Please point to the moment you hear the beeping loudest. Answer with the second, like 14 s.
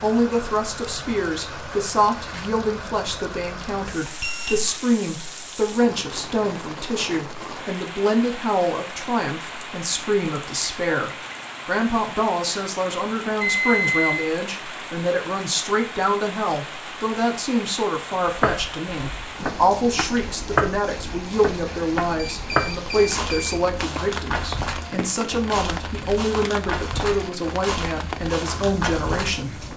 14 s.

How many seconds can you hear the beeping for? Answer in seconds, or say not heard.
3 s.